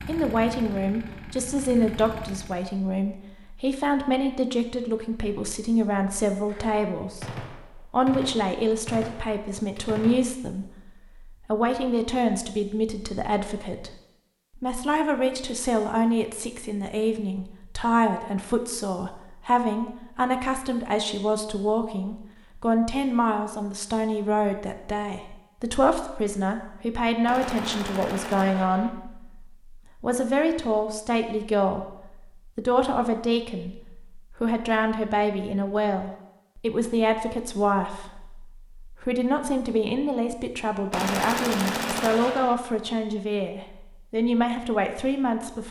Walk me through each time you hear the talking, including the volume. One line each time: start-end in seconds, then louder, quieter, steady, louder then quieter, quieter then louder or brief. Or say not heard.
0.1-10.7 steady
11.4-13.9 brief
14.6-31.9 steady
32.5-45.6 steady.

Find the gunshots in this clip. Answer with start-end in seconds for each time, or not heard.
6.4-10.2, 27.2-28.9, 40.9-42.5.